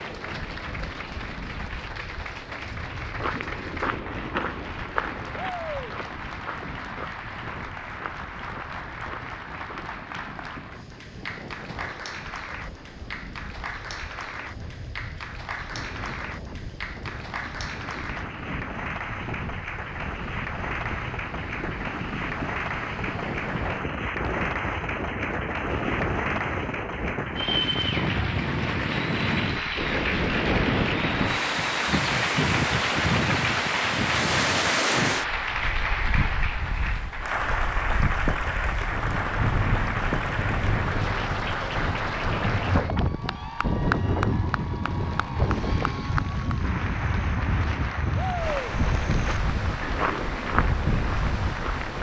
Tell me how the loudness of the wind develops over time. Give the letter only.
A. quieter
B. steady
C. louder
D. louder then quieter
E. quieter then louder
C.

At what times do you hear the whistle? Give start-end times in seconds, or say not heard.
not heard.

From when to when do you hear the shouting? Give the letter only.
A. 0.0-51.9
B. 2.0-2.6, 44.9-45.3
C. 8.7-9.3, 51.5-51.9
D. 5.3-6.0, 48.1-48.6
D.